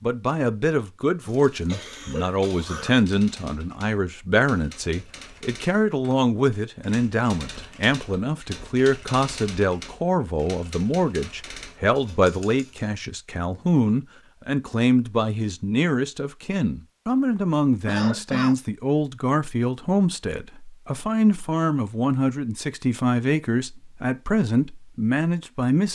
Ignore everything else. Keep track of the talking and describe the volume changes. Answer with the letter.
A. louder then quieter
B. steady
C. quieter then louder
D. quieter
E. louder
B.